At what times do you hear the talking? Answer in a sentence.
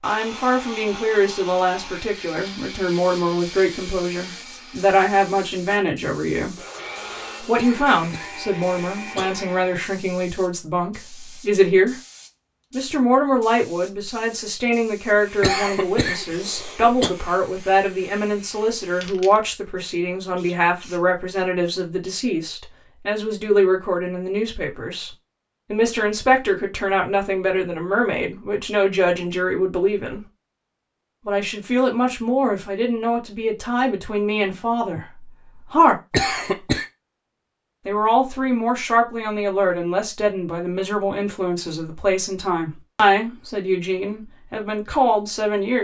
You can hear the talking from 0.0 to 6.5 s, from 7.4 to 11.9 s, from 12.7 to 25.1 s, from 25.7 to 30.2 s, from 31.2 to 36.0 s and from 37.9 to 45.7 s.